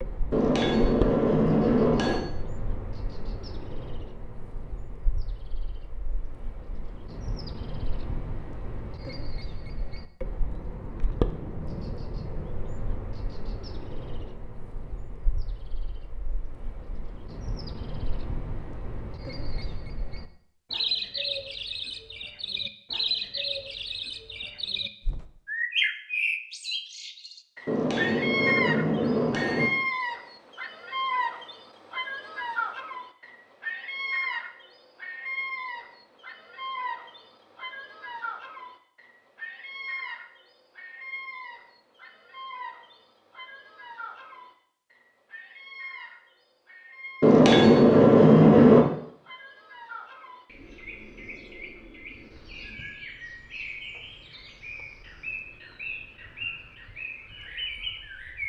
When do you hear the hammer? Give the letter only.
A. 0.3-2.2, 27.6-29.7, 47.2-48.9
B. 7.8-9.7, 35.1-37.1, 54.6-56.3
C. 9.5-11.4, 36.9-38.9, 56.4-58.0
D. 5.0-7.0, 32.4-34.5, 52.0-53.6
A.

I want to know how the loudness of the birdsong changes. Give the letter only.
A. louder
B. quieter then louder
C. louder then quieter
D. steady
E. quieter
C.